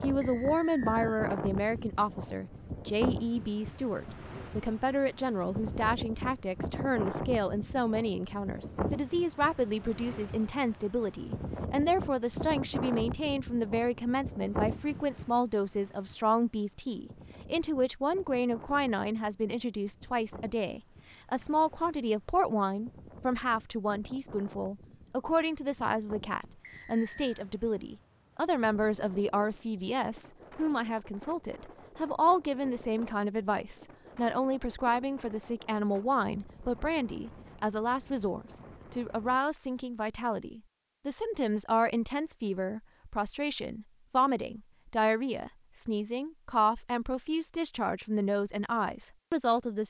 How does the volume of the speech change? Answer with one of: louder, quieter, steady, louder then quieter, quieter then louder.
steady.